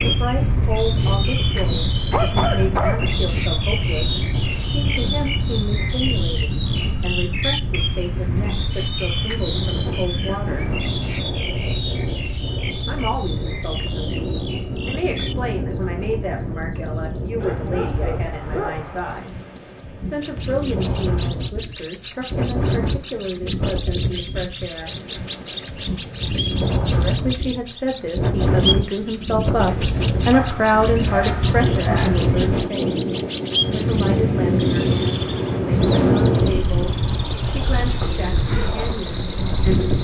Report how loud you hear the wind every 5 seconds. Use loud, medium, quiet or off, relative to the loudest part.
loud, medium, medium, medium, medium, loud, loud, loud.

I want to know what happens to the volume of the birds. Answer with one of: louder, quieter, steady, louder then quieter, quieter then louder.
quieter then louder.